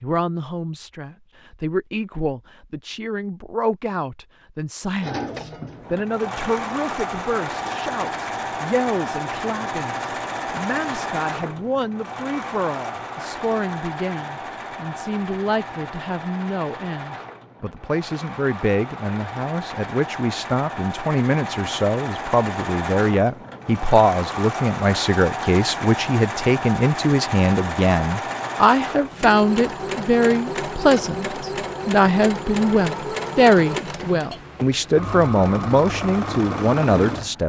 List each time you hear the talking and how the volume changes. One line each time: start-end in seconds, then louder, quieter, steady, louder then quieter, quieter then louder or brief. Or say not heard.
0.0-37.4 louder.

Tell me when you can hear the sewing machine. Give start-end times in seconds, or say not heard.
5.0-37.4.